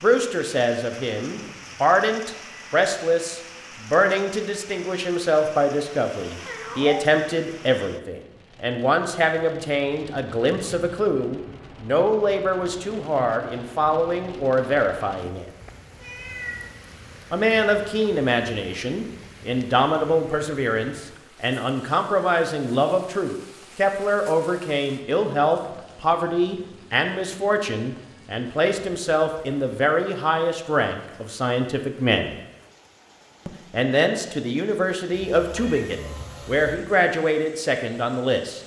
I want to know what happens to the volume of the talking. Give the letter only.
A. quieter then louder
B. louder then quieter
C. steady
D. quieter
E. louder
C.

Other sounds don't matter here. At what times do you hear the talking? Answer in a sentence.
You can hear the talking from 0.0 to 15.4 s, from 17.3 to 32.4 s and from 33.5 to 38.6 s.